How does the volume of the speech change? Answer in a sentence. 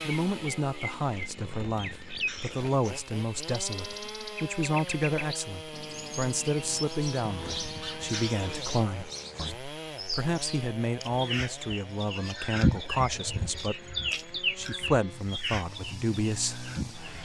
The loudness of the speech stays about the same.